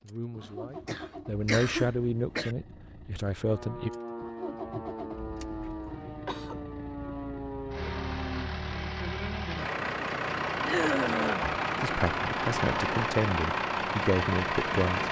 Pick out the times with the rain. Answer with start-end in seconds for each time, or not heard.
not heard.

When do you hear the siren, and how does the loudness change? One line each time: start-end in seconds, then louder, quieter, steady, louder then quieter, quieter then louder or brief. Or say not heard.
3.4-8.5 steady.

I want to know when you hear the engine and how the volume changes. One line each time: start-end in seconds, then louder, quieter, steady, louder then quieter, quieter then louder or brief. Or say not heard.
0.0-15.0 louder.